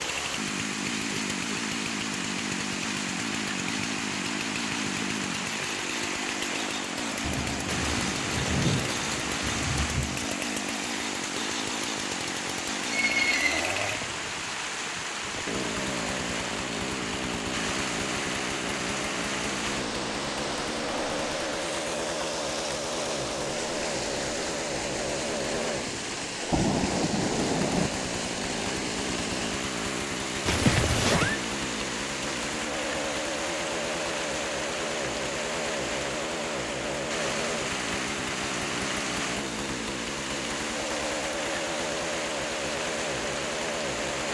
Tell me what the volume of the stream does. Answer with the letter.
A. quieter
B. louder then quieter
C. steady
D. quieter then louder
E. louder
C.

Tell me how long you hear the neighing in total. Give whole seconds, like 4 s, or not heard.
2 s.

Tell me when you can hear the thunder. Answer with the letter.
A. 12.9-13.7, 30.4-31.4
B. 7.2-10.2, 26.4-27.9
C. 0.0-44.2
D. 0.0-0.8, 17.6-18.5
B.